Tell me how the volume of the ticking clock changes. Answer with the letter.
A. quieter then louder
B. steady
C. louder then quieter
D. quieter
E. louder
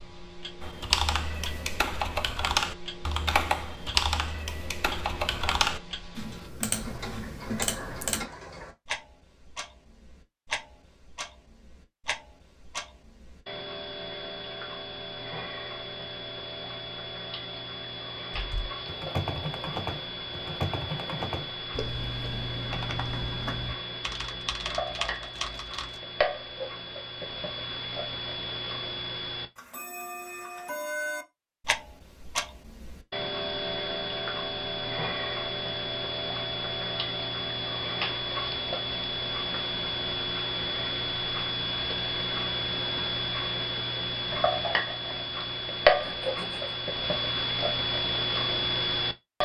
E.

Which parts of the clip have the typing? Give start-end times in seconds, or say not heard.
0.6-8.2, 18.3-26.0.